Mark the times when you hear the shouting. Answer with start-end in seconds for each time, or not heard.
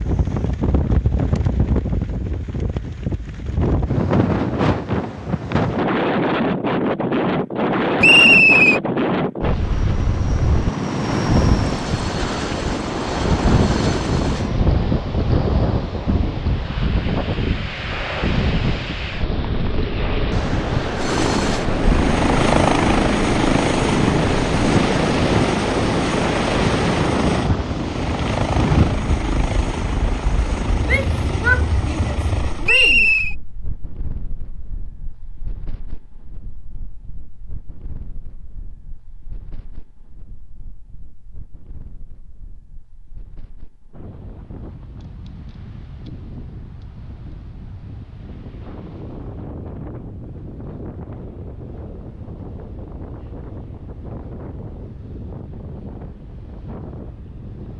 30.9-33.1.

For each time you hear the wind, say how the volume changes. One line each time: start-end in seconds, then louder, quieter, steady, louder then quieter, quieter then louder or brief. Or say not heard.
0.0-57.7 quieter then louder.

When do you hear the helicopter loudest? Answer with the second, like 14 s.
23 s.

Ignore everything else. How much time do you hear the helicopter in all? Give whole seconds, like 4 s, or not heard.
17 s.